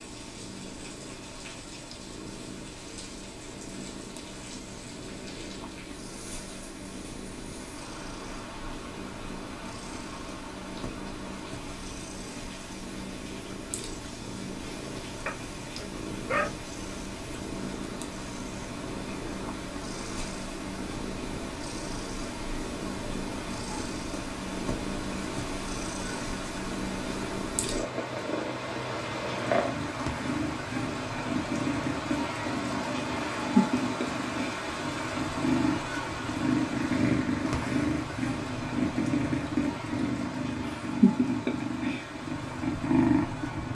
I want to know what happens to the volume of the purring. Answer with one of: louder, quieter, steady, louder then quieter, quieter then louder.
louder.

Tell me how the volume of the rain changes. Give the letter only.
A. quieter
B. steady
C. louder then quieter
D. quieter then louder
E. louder
E.